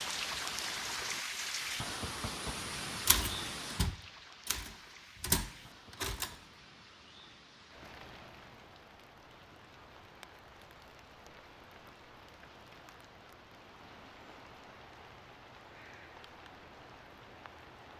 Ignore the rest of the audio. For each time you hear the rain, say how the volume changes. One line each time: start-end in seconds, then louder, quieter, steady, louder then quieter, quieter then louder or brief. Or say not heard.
0.0-17.9 quieter.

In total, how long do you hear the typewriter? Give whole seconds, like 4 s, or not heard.
3 s.